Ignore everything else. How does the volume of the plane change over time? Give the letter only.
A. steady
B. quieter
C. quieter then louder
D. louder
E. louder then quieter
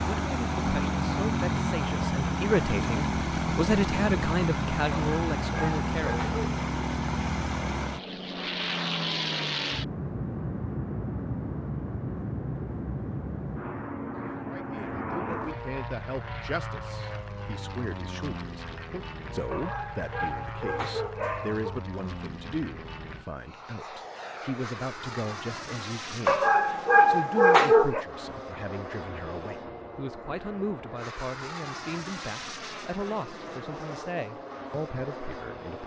B.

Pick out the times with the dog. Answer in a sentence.
You can hear the dog from 5.0 to 6.7 s, from 19.5 to 21.8 s and from 26.2 to 28.1 s.